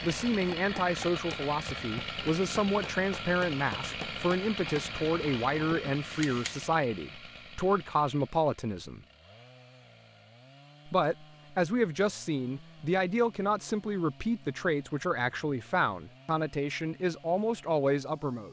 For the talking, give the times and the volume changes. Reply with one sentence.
The talking can be heard from 0.0 to 9.1 s, at a steady volume; and from 10.8 to 18.4 s, at a steady volume.